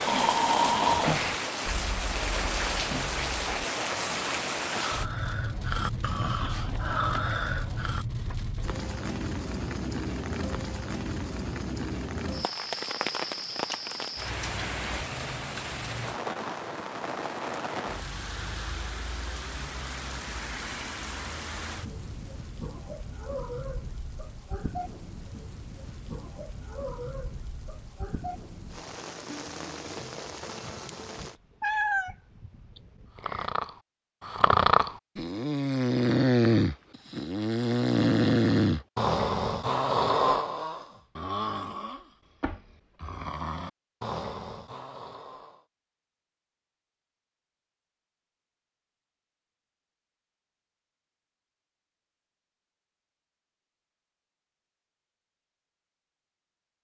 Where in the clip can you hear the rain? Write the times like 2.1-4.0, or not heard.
0.0-31.4.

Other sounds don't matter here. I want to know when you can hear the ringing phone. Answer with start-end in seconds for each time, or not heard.
not heard.